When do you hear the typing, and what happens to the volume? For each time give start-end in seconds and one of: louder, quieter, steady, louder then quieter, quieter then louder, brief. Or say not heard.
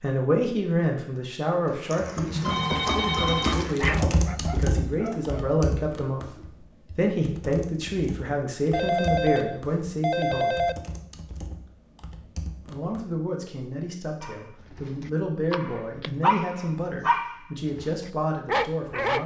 1.6-13.1 quieter then louder.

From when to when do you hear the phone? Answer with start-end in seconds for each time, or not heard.
2.4-3.7, 8.7-10.8, 15.5-16.1.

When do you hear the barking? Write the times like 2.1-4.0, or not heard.
3.4-5.6, 14.2-19.2.